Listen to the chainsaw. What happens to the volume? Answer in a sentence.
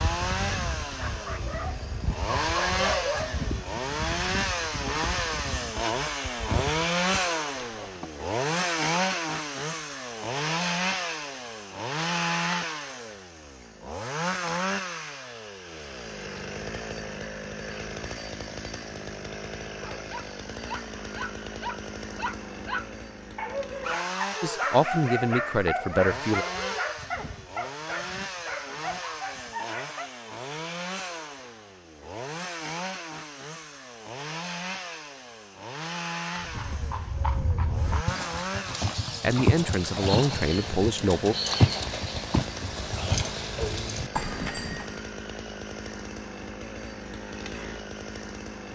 The volume of the chainsaw goes down.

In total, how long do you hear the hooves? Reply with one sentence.
You can hear the hooves for 17 seconds altogether.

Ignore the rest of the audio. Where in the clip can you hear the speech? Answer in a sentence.
The speech can be heard from 24.4 to 26.4 s and from 39.2 to 41.4 s.